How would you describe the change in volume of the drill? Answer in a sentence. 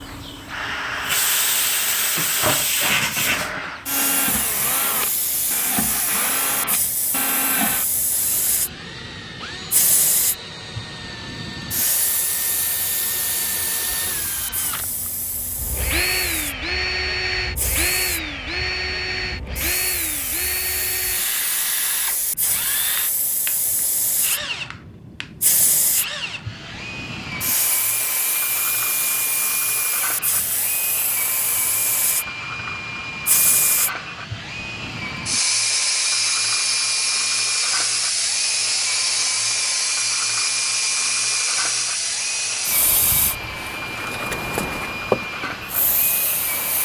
The loudness of the drill stays about the same.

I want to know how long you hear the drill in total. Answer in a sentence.
The drill can be heard for 47 seconds in total.